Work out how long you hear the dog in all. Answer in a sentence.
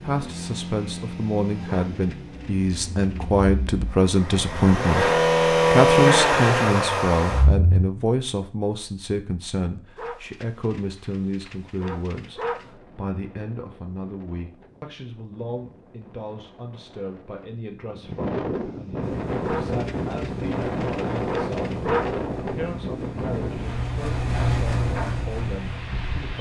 The dog can be heard for 7 seconds in total.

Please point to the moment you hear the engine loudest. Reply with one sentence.
The loudest moment of the engine is at 6 seconds.